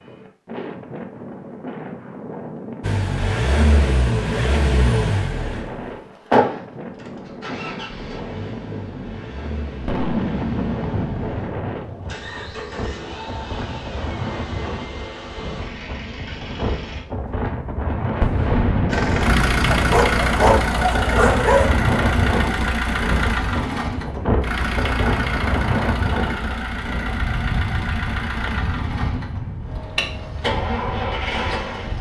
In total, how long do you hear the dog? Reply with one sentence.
The dog can be heard for 2 seconds in total.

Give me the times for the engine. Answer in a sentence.
The engine can be heard from 2.8 to 17.1 s and from 18.9 to 31.9 s.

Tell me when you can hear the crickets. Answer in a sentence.
You can't hear the crickets here.